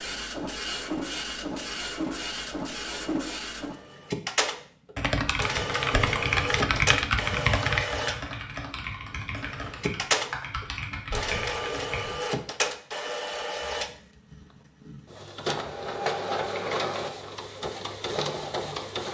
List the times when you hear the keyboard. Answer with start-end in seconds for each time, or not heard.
5.0-12.1.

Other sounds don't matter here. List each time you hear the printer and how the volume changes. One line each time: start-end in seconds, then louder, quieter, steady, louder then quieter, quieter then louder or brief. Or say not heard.
0.0-19.0 steady.